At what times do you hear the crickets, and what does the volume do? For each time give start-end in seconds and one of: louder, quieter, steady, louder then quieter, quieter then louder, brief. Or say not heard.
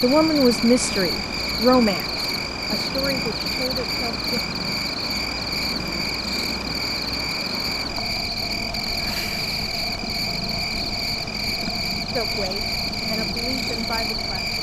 0.0-14.5 steady.